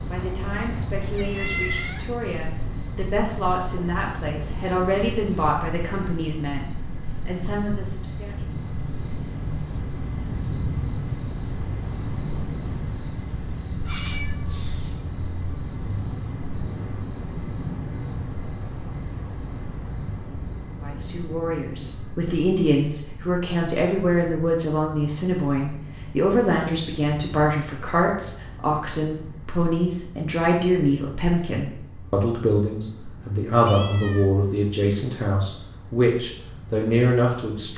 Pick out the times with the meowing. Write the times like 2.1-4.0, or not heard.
1.1-2.1, 13.8-15.1, 33.5-34.4.